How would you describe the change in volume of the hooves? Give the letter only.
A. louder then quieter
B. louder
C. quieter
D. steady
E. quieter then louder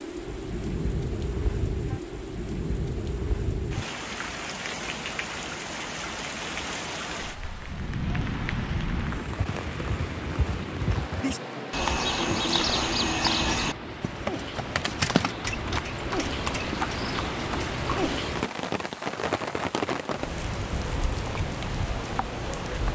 A.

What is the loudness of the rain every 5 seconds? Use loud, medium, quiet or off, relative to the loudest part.
loud, loud, medium, loud, loud.